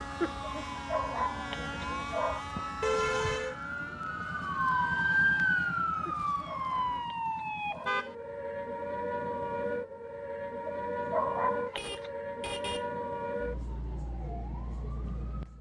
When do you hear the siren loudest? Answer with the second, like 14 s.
5 s.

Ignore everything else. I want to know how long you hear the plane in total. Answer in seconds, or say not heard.
7 s.